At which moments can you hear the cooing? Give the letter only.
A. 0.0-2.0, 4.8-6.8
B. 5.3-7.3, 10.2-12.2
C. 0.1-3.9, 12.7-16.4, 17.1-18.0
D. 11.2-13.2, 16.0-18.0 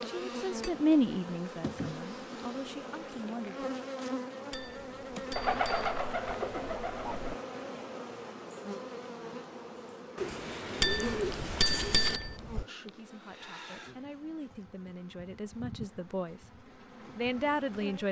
B.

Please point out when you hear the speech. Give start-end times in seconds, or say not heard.
0.1-3.9, 12.7-16.4, 17.1-18.0.